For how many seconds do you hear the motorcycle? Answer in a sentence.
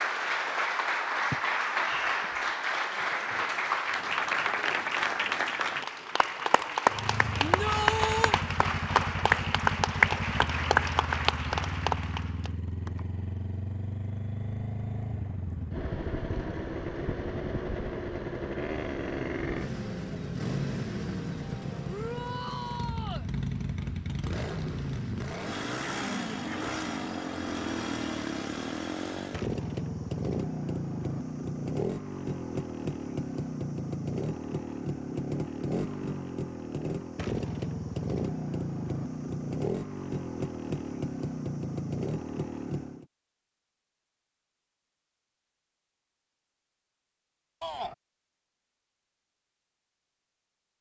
The motorcycle can be heard for 36 seconds in total.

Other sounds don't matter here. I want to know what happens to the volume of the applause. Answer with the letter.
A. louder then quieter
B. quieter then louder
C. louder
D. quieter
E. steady
E.